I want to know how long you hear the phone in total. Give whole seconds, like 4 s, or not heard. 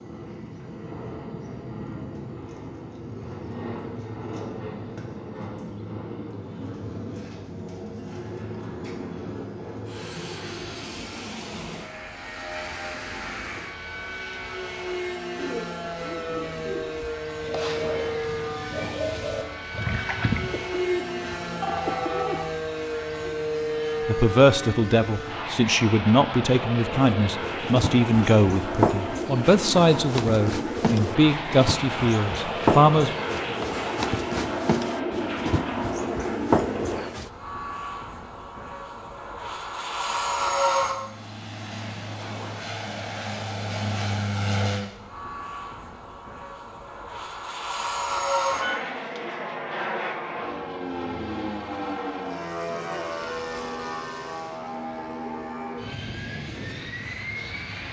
2 s.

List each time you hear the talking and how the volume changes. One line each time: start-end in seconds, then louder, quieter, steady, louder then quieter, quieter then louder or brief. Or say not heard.
24.1-33.1 steady.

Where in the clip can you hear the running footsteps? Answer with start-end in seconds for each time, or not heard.
26.9-37.3.